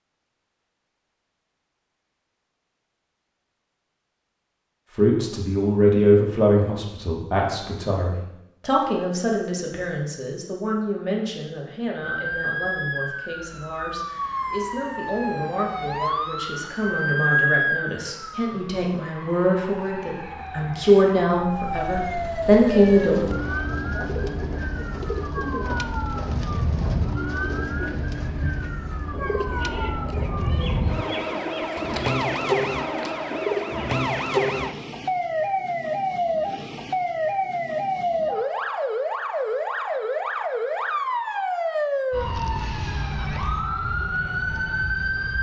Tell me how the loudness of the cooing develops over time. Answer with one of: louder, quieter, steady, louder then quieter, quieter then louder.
steady.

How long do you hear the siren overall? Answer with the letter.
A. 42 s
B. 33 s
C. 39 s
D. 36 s
B.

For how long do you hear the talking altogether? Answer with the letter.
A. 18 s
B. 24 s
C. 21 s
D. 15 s
A.